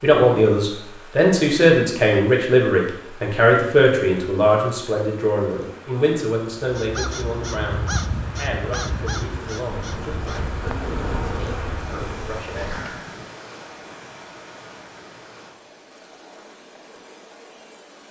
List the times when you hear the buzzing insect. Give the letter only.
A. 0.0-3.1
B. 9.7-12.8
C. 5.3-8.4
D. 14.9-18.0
B.